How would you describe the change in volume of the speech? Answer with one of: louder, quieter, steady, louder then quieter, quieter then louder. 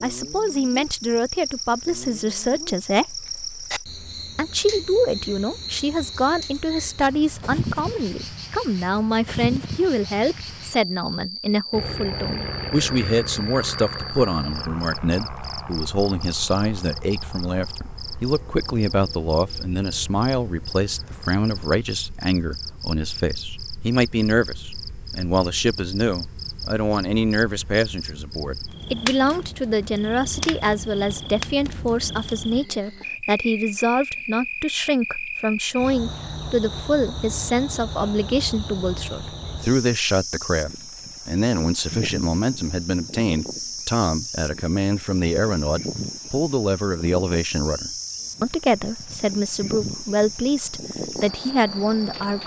steady.